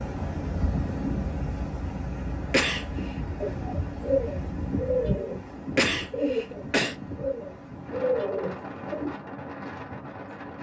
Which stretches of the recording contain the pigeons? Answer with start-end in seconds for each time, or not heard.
3.4-9.2.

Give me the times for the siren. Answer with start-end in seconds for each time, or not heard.
not heard.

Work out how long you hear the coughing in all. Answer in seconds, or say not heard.
2 s.